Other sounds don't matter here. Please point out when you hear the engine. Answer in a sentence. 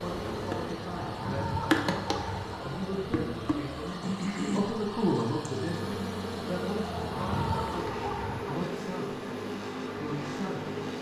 The engine can be heard from 0.0 to 10.9 s.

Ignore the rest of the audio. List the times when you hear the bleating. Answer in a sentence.
The bleating can't be heard in this clip.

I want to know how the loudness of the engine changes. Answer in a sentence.
The loudness of the engine goes up.